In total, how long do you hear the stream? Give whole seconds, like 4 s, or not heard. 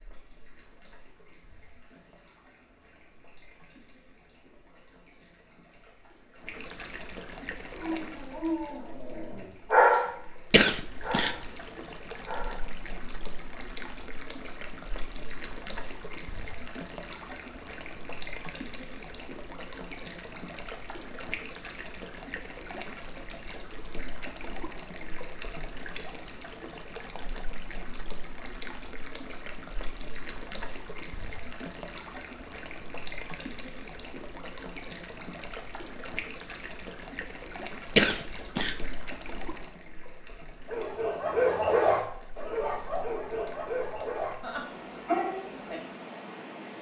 47 s.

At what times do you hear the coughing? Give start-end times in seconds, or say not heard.
10.5-11.5, 38.0-38.9.